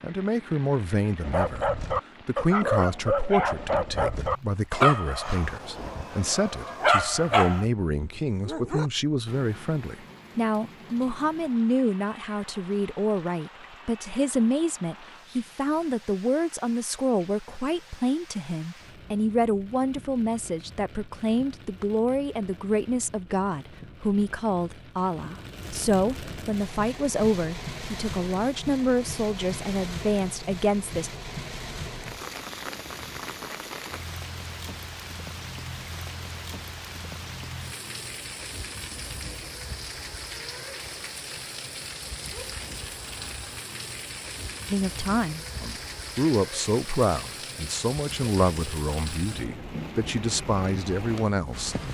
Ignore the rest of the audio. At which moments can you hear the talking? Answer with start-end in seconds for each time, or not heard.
0.0-31.1, 44.7-51.8.